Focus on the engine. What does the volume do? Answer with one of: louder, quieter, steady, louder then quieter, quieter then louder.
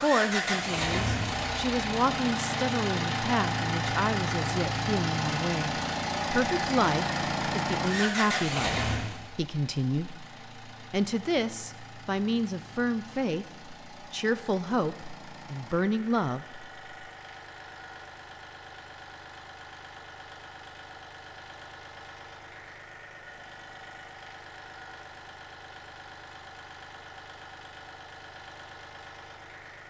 quieter.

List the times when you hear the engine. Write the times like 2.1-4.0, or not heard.
0.0-29.8.